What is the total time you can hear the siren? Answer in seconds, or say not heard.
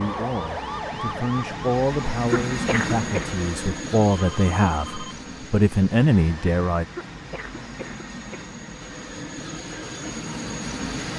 2 s.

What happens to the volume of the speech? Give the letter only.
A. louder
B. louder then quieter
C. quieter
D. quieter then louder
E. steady
A.